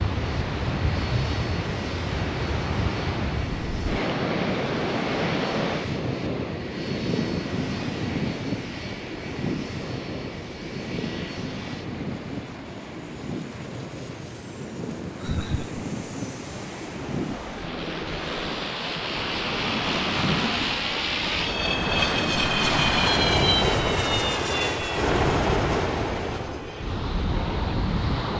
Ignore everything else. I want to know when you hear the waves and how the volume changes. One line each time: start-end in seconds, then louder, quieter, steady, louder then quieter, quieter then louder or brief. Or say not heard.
0.0-28.3 quieter then louder.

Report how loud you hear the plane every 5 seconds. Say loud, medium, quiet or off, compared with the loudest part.
quiet, quiet, quiet, medium, loud, medium.